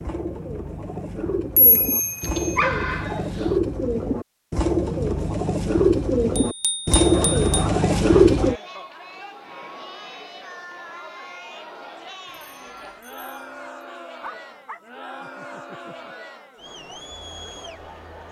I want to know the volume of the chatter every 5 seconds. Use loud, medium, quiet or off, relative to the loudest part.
off, loud, loud, loud.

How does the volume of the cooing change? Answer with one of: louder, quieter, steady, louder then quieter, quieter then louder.
louder.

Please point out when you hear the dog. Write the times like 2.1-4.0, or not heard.
2.2-3.5, 7.1-8.6, 14.2-16.1.